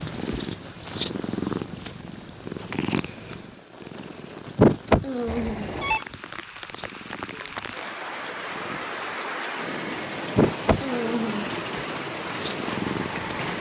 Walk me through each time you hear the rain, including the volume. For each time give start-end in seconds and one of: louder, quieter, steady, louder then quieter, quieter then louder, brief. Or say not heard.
0.0-13.5 louder.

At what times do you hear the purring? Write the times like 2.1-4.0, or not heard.
0.0-13.5.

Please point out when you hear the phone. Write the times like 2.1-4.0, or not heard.
5.2-6.0.